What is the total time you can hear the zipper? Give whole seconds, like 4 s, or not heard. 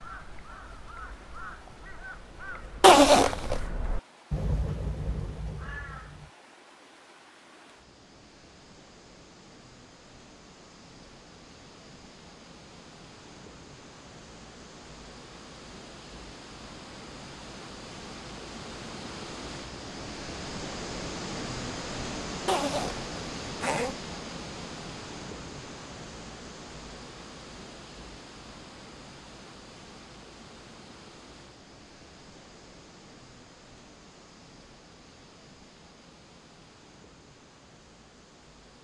2 s.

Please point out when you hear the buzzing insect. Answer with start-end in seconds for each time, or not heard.
not heard.